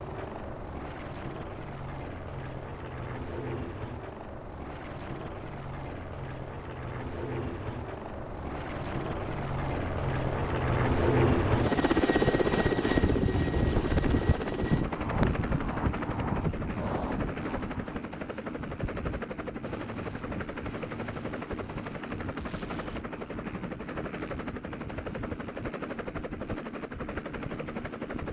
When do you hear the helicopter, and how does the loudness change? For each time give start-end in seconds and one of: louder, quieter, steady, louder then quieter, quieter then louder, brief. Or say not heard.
0.0-28.2 louder then quieter.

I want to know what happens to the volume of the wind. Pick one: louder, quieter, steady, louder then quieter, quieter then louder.
quieter.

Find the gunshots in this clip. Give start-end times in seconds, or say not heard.
19.6-23.1.